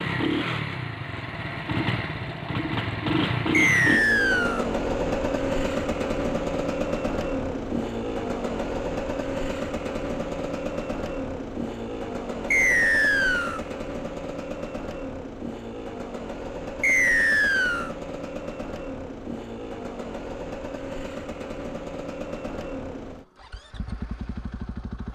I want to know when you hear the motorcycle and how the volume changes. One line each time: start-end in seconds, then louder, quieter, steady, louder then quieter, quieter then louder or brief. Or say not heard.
0.0-25.0 quieter.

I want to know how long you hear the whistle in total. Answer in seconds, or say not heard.
3 s.